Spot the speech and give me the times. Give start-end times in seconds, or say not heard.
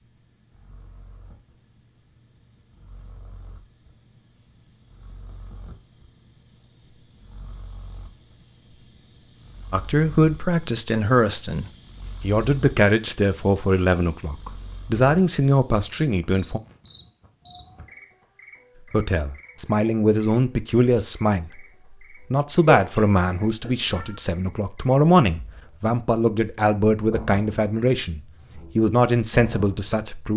9.7-16.6, 18.9-21.6, 22.3-30.3.